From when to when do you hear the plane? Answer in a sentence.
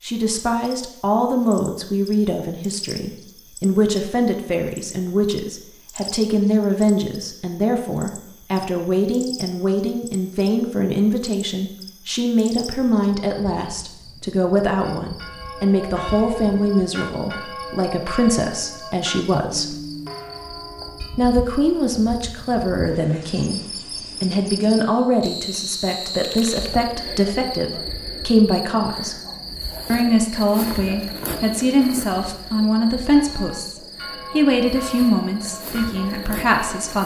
You can't hear the plane here.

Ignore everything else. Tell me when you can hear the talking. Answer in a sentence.
The talking can be heard from 0.0 to 19.8 s, from 21.1 to 23.6 s, from 24.2 to 29.1 s and from 29.9 to 37.0 s.